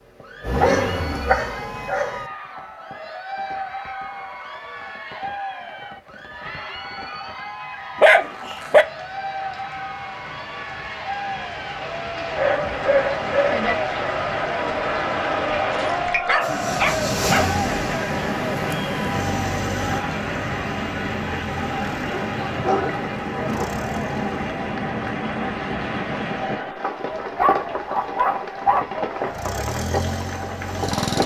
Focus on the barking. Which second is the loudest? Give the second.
8 s.